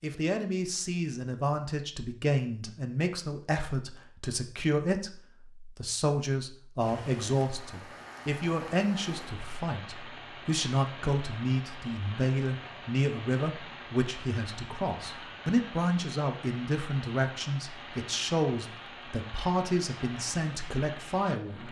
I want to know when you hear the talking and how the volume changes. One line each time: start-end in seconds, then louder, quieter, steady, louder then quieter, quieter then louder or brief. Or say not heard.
0.0-21.6 steady.